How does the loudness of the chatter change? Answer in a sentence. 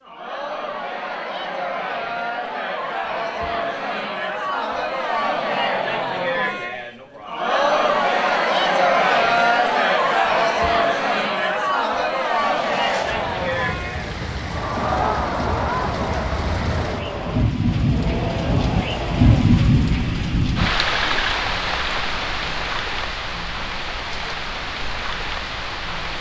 The loudness of the chatter goes up, then down.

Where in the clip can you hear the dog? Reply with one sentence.
The dog can't be heard in this clip.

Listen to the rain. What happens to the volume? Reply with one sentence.
The loudness of the rain goes up, then down.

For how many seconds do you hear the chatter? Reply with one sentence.
The chatter can be heard for 26 seconds in total.